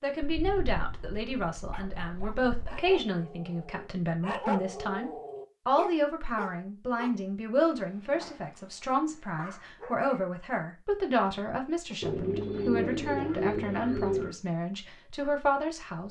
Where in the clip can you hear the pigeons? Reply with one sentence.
You can hear the pigeons from 0.2 to 3.0 s and from 12.0 to 14.3 s.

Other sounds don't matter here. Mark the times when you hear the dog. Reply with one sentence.
You can hear the dog from 1.0 to 10.1 s.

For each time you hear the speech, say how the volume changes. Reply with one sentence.
The speech can be heard from 0.0 to 16.0 s, at a steady volume.